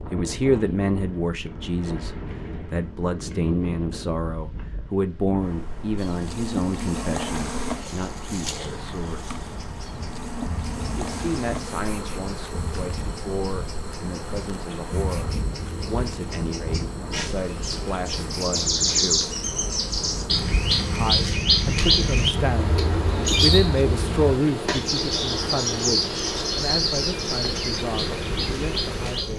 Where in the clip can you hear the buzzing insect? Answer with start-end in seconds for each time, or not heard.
6.0-29.3.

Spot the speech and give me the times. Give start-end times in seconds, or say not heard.
0.1-9.3, 10.9-19.2, 20.9-29.3.